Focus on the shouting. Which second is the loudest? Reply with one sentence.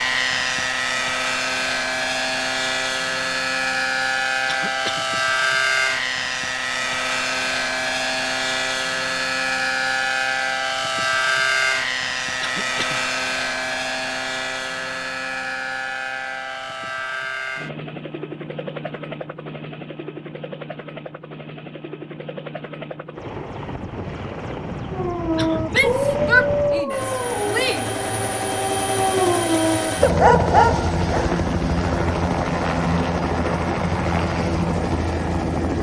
The volume of the shouting peaks at 26 seconds.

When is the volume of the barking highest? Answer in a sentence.
The volume of the barking peaks at 30 seconds.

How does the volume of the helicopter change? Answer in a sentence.
The volume of the helicopter goes down, then up.